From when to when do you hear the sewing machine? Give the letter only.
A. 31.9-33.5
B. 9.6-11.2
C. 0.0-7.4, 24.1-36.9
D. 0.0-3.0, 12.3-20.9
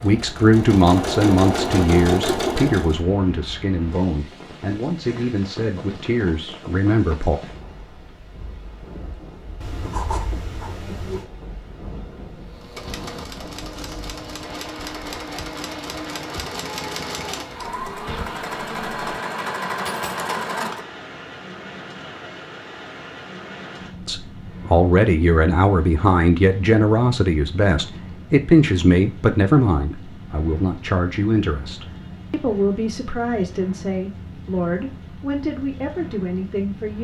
D.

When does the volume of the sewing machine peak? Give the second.
2 s.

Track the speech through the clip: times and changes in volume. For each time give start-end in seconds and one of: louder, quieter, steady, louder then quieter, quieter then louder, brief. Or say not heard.
0.0-7.4 quieter
24.1-36.9 quieter.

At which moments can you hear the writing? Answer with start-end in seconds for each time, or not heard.
9.6-11.2.